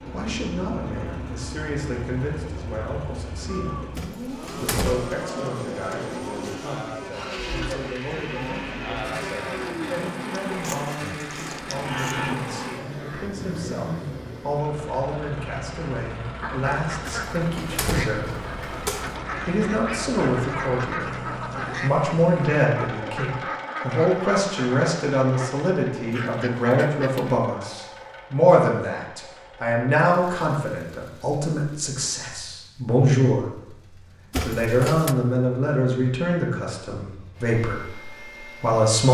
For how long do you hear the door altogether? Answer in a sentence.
The door can be heard for 4 seconds in total.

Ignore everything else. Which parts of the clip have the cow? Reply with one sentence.
You can hear the cow from 3.5 to 13.3 s.